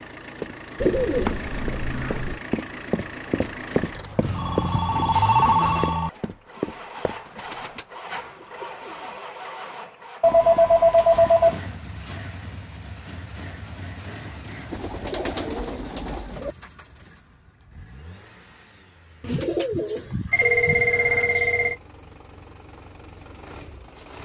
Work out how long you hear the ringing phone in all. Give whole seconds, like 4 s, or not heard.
5 s.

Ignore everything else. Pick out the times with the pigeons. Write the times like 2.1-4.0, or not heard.
0.8-2.4, 7.2-9.2, 14.7-16.6, 19.2-20.9.